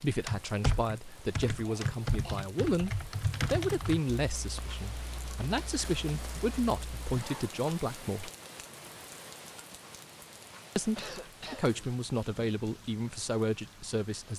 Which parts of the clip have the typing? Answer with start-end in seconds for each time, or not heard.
0.2-7.2.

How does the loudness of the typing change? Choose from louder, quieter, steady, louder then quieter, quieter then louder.
quieter.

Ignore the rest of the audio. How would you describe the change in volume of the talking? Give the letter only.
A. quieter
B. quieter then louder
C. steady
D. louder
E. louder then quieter
C.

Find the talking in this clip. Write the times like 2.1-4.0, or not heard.
0.0-8.3, 10.8-14.3.